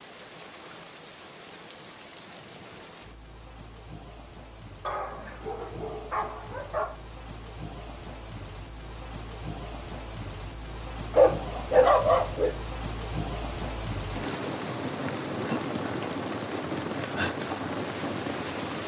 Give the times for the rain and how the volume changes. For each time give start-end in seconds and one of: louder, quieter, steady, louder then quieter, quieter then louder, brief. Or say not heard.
0.0-18.8 louder.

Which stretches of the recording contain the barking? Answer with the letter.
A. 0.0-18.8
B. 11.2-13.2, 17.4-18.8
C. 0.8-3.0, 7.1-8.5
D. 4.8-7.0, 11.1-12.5
D.